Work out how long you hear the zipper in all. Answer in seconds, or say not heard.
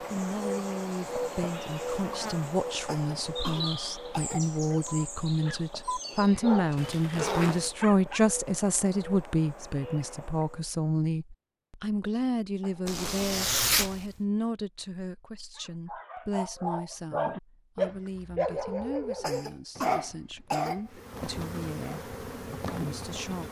2 s.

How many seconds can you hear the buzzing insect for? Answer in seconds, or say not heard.
13 s.